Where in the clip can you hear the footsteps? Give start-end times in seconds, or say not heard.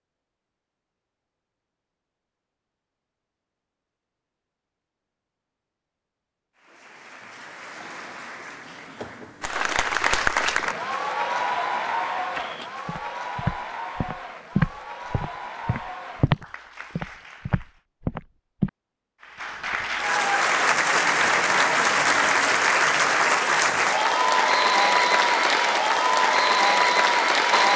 12.3-18.7.